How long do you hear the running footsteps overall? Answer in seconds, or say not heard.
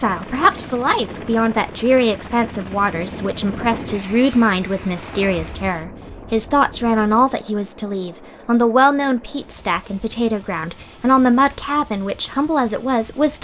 not heard.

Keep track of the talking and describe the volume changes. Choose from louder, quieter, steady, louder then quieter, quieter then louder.
steady.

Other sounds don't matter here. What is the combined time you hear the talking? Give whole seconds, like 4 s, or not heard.
13 s.